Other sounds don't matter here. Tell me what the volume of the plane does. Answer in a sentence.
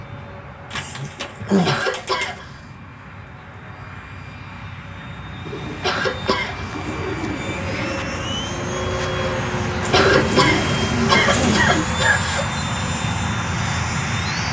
The loudness of the plane goes up.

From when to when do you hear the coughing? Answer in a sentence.
The coughing can be heard from 1.6 to 2.6 s, from 5.8 to 6.7 s and from 9.9 to 12.5 s.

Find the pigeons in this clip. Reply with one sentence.
You can hear the pigeons from 0.7 to 2.4 s, from 5.5 to 8.0 s and from 9.8 to 11.8 s.